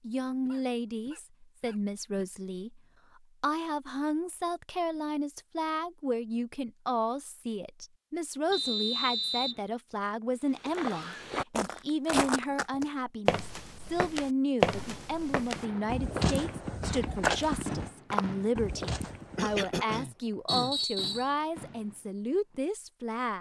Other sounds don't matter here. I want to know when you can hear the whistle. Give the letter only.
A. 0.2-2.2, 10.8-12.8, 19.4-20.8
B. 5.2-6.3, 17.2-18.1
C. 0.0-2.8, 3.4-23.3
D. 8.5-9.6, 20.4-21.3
D.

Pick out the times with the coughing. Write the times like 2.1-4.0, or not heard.
0.2-2.2, 10.8-12.8, 19.4-20.8.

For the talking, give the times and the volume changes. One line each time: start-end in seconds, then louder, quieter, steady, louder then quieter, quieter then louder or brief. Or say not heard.
0.0-2.8 brief
3.4-23.3 steady.